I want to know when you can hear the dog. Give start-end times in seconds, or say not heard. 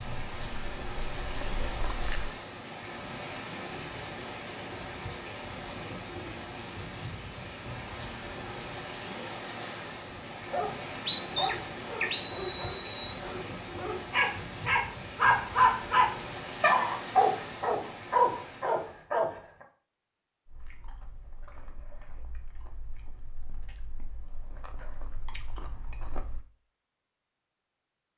10.1-19.4.